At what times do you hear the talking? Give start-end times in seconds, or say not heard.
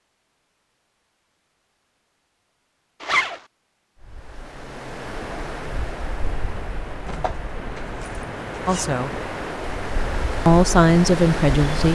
8.7-9.1, 10.4-11.9.